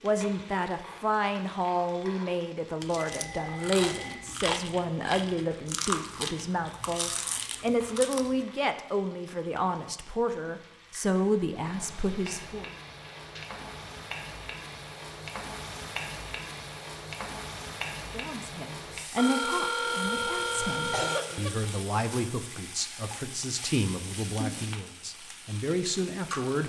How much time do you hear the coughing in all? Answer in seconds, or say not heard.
2 s.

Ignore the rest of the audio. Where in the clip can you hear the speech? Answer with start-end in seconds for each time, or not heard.
0.0-12.7, 18.1-26.6.